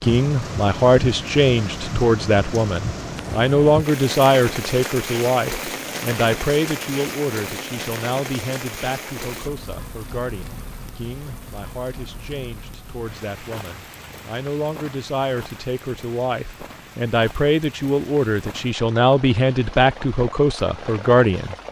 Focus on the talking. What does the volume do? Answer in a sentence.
The loudness of the talking goes down, then up.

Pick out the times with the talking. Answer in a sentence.
The talking can be heard from 0.0 to 21.6 s.